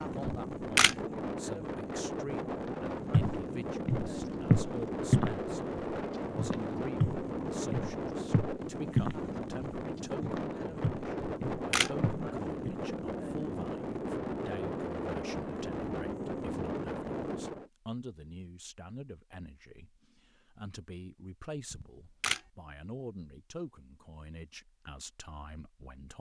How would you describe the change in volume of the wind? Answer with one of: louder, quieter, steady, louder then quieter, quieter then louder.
steady.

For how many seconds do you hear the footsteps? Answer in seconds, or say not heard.
10 s.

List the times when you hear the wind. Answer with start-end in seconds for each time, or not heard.
0.0-17.7.